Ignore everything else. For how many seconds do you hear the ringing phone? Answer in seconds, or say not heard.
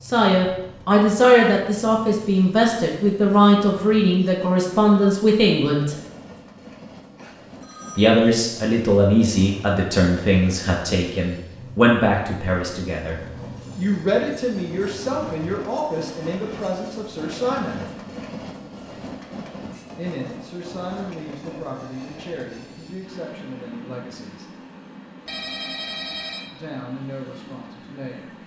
2 s.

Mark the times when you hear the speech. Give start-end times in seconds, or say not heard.
0.0-6.0, 8.0-17.9, 19.9-24.5, 26.5-28.4.